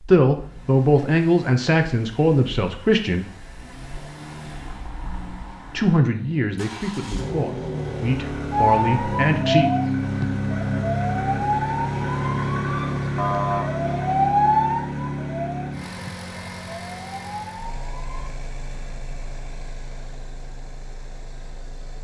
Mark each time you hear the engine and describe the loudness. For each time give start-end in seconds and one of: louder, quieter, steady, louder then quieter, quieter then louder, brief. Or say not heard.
0.2-22.0 louder then quieter.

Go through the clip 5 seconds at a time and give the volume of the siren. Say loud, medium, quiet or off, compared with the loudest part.
off, loud, loud, quiet, off.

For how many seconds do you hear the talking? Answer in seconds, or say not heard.
7 s.